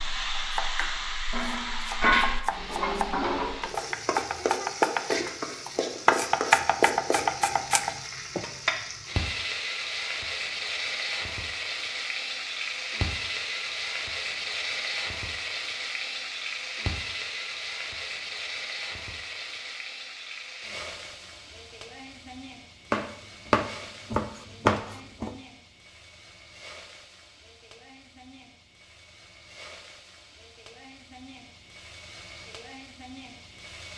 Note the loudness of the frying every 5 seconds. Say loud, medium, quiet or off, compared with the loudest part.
loud, loud, loud, medium, quiet, quiet, quiet.